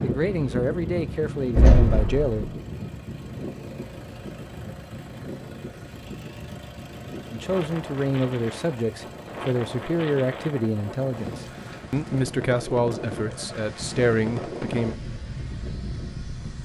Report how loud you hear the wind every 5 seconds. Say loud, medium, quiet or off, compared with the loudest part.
loud, medium, loud, loud.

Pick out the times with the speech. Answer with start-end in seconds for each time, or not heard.
0.0-2.5, 7.3-14.9.